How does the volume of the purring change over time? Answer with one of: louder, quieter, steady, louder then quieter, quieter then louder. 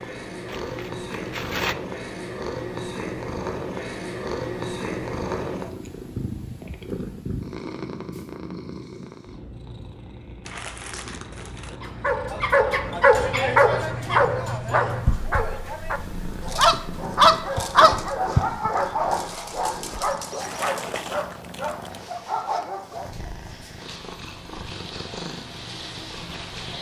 quieter.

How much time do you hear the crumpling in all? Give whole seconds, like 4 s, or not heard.
4 s.